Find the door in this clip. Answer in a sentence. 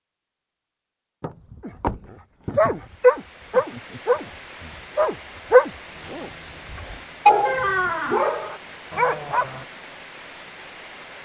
You can hear the door from 1.2 to 2.8 s and from 7.5 to 8.3 s.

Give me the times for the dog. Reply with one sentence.
You can hear the dog from 1.6 to 9.7 s.